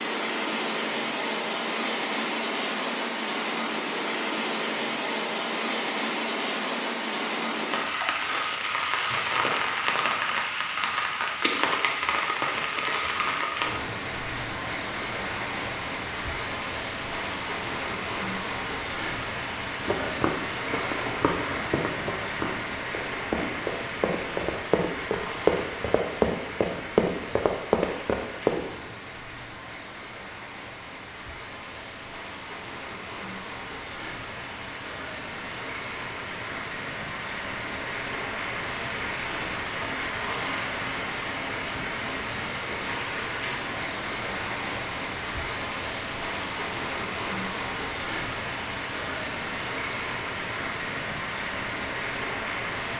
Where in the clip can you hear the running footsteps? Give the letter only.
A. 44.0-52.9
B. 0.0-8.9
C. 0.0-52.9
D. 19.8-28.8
D.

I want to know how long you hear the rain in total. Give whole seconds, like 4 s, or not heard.
53 s.